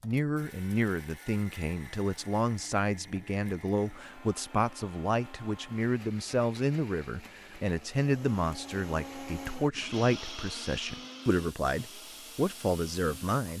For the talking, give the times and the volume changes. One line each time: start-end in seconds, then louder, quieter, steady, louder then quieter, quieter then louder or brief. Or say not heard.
0.0-13.5 steady.